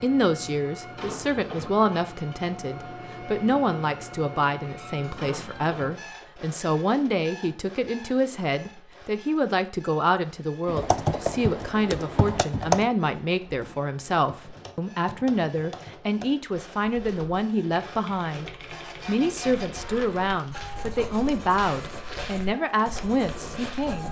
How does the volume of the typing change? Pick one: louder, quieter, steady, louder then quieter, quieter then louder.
quieter.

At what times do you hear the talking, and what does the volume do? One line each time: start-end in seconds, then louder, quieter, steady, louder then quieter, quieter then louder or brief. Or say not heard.
0.0-24.0 steady.